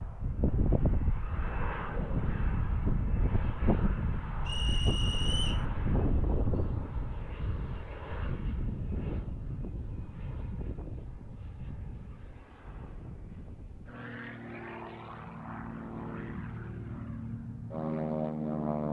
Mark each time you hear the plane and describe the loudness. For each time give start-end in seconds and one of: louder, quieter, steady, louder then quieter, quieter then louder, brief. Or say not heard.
0.0-18.8 quieter then louder.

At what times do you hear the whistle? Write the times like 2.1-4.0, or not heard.
4.5-5.7.